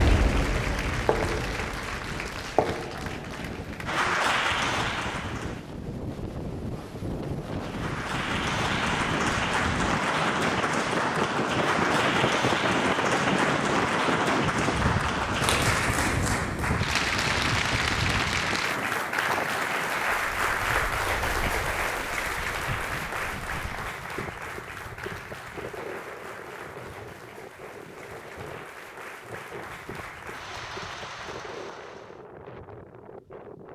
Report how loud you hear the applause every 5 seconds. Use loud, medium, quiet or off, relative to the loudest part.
loud, loud, loud, loud, loud, quiet, quiet.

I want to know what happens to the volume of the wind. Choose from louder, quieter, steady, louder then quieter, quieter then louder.
louder then quieter.